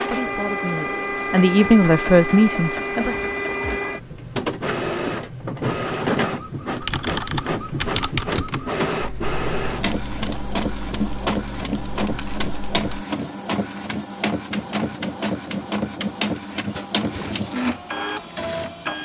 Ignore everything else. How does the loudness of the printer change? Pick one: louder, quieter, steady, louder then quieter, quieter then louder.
steady.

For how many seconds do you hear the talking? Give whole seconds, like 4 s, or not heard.
3 s.